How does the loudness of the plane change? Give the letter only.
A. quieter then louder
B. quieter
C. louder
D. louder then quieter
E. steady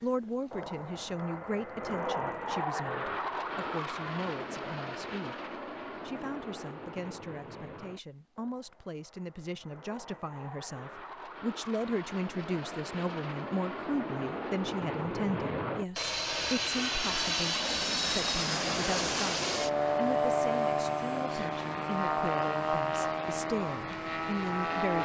A.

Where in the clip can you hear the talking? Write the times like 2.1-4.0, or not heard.
0.0-25.0.